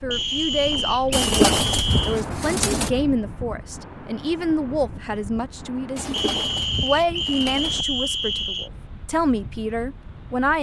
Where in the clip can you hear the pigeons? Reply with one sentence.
The pigeons can be heard from 1.1 to 2.9 s and from 6.0 to 7.8 s.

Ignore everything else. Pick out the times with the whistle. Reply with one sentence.
The whistle can be heard from 0.1 to 2.2 s and from 6.1 to 8.7 s.